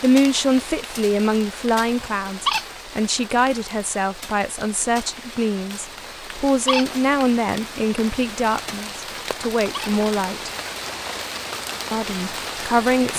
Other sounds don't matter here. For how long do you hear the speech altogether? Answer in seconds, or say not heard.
12 s.